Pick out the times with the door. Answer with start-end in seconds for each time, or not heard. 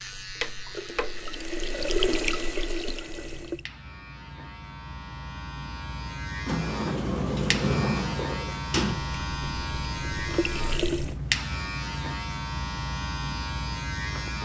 6.5-9.1.